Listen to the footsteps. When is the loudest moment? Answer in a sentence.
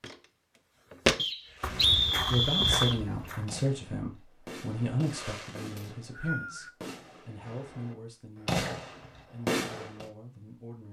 The volume of the footsteps peaks at 1 second.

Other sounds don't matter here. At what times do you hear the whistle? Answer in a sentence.
You can hear the whistle from 1.1 to 3.0 s and from 5.8 to 6.7 s.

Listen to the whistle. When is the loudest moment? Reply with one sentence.
The loudest moment of the whistle is at 2 seconds.